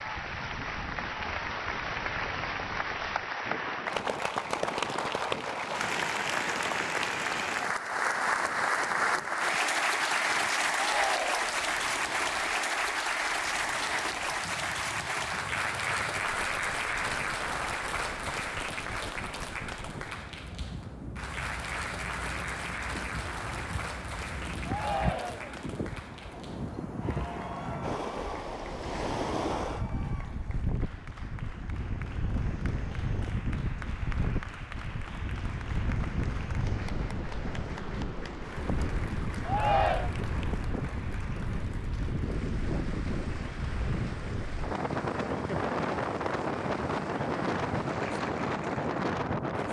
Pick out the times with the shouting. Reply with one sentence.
You can hear the shouting from 10.7 to 11.6 s, from 24.6 to 25.6 s and from 39.5 to 40.1 s.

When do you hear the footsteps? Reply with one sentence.
The footsteps can't be heard in this clip.